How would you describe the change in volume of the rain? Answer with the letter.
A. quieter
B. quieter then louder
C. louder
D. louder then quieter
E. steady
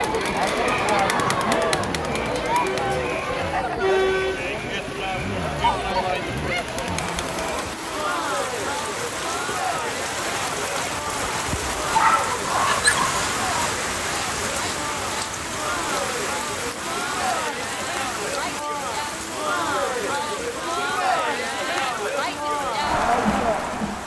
D.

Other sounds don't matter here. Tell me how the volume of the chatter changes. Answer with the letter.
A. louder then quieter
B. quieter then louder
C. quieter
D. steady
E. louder
B.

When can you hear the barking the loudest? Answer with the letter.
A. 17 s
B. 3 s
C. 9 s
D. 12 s
D.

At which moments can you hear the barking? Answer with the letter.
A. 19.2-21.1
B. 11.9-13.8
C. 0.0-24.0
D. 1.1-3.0
B.